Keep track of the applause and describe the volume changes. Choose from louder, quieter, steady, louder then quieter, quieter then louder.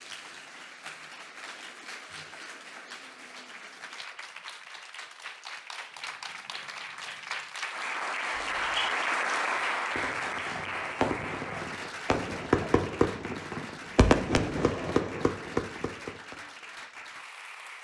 louder then quieter.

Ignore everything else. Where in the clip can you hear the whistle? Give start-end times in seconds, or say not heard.
8.3-8.9.